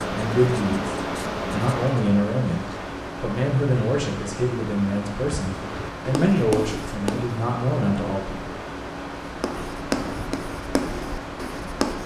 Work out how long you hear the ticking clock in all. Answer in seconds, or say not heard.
not heard.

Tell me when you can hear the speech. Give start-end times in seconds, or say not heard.
0.0-8.6.